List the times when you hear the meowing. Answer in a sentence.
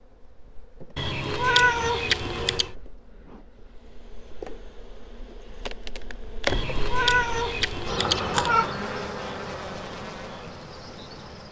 You can hear the meowing from 0.9 to 2.7 s and from 6.5 to 8.7 s.